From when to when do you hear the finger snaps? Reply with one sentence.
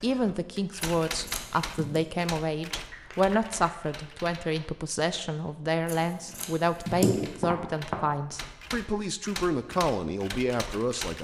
You can hear the finger snaps from 2.9 to 3.8 s and from 7.4 to 8.0 s.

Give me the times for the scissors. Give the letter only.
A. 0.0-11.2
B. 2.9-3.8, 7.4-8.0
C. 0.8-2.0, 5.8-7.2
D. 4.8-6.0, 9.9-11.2
C.